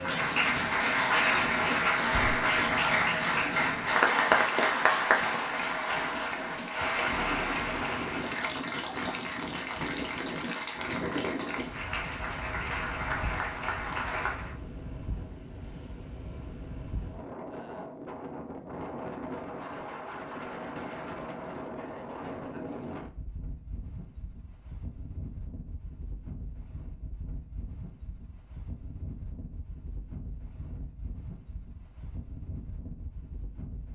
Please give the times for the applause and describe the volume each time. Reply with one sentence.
You can hear the applause from 0.0 to 14.6 s, getting quieter.